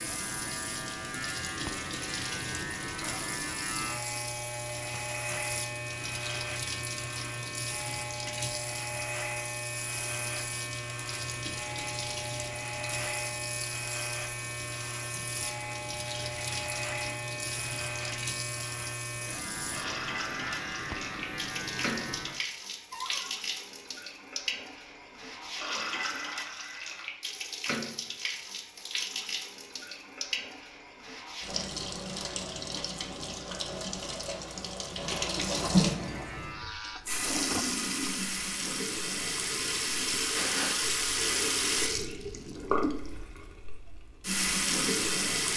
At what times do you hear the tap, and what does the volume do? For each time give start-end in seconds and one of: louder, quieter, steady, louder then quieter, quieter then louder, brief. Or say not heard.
0.0-45.5 louder.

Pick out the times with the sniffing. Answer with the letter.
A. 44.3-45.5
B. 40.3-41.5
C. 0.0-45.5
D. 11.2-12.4
B.